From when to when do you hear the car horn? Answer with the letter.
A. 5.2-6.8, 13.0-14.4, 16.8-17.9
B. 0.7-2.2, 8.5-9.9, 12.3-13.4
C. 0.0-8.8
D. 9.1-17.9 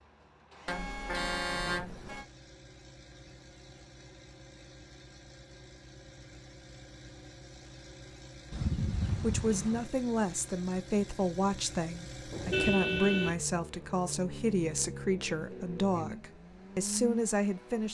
B.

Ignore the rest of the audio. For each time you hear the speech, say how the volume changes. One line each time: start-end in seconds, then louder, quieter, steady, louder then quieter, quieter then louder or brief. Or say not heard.
9.1-17.9 steady.